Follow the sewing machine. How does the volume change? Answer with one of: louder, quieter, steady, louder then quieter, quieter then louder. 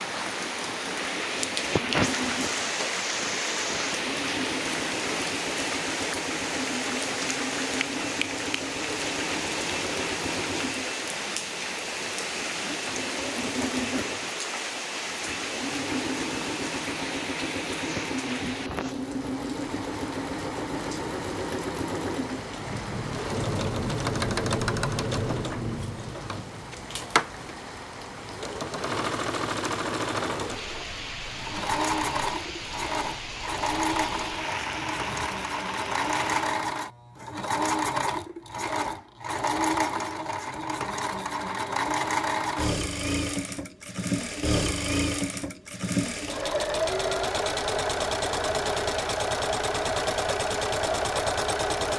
louder.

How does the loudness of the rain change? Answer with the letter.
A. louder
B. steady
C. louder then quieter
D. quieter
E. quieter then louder
D.